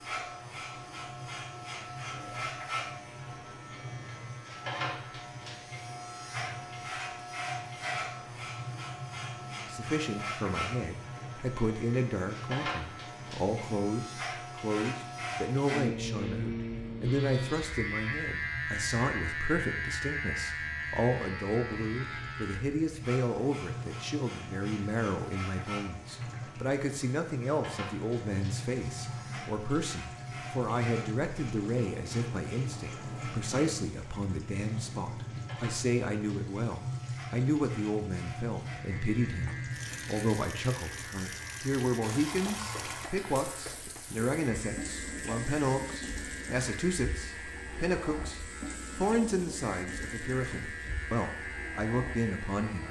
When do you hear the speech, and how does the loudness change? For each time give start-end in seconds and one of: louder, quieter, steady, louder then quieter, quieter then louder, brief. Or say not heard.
9.7-52.8 steady.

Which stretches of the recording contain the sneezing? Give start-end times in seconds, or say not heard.
not heard.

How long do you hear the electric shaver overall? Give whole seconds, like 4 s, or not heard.
53 s.